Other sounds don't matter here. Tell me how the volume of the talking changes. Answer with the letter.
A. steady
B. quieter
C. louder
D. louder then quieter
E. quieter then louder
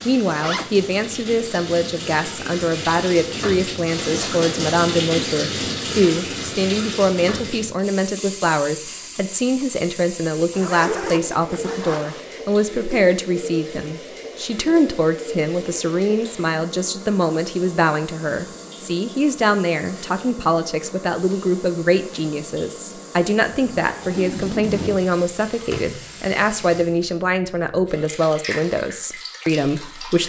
A.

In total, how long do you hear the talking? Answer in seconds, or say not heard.
30 s.